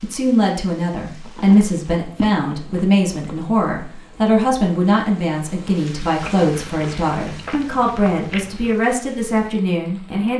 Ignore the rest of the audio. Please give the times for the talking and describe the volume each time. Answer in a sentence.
You can hear the talking from 0.0 to 10.3 s, at a steady volume.